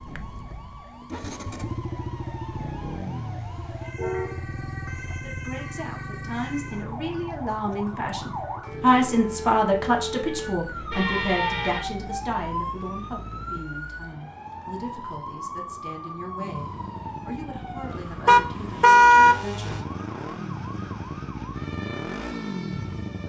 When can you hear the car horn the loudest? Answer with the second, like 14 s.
19 s.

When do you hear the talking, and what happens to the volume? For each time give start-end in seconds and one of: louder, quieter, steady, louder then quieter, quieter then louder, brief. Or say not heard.
5.2-19.9 louder then quieter.